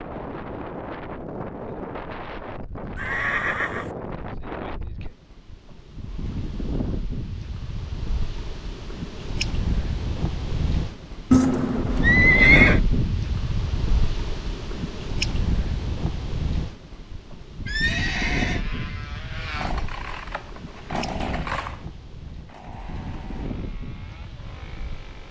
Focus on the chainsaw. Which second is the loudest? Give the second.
21 s.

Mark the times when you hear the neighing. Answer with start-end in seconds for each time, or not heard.
3.0-4.0, 11.3-12.8, 17.6-18.6.